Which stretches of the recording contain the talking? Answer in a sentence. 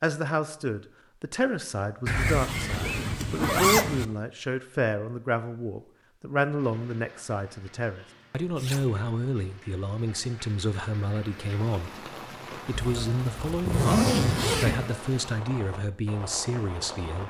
You can hear the talking from 0.0 to 11.9 s and from 12.6 to 17.2 s.